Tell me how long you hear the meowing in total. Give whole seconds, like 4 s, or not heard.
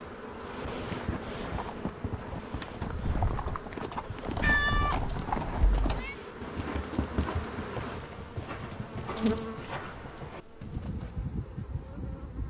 3 s.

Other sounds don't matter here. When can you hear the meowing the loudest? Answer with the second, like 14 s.
5 s.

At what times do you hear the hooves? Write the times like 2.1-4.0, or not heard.
0.6-11.2.